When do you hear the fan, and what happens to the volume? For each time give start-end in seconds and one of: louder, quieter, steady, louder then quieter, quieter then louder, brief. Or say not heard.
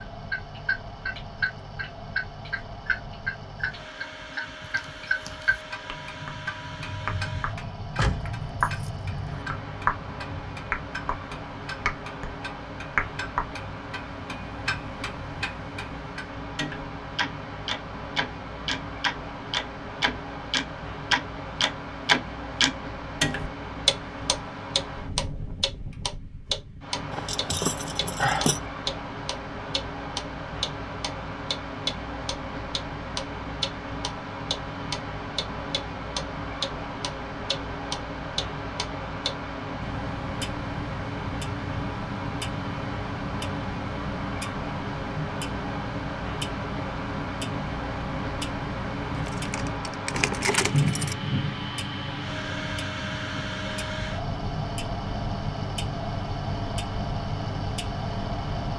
0.0-58.7 louder.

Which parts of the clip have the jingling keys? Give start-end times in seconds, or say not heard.
8.0-9.4, 27.1-28.6, 49.1-51.1.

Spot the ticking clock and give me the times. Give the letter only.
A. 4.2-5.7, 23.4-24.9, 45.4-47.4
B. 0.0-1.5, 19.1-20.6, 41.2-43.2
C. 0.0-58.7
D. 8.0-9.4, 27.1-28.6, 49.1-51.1
C.